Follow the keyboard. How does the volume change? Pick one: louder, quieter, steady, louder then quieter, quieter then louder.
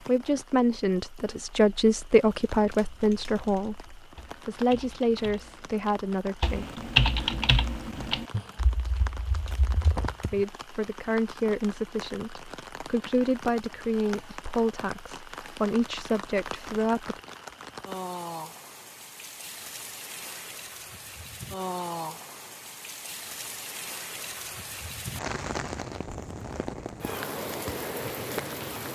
louder then quieter.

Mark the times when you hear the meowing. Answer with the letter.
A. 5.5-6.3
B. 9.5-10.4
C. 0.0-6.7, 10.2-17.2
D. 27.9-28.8
B.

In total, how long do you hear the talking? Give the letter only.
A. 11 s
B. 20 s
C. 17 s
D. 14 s
D.